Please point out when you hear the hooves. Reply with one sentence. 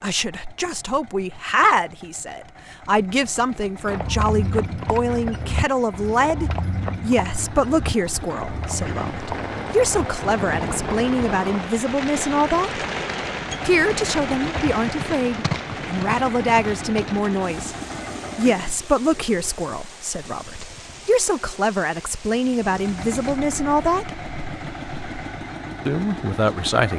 The hooves can be heard from 3.8 to 11.2 s and from 14.4 to 17.2 s.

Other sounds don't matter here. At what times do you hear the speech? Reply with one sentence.
You can hear the speech from 0.0 to 12.8 s, from 13.7 to 17.8 s, from 18.4 to 24.2 s and from 25.9 to 26.9 s.